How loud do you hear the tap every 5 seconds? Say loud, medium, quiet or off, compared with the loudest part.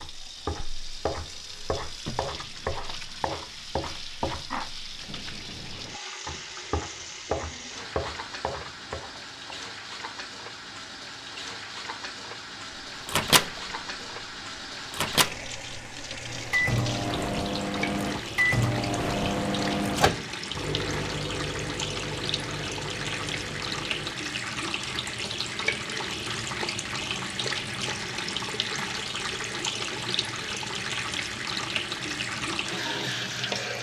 medium, medium, medium, medium, loud, loud, loud.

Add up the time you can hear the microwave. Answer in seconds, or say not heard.
11 s.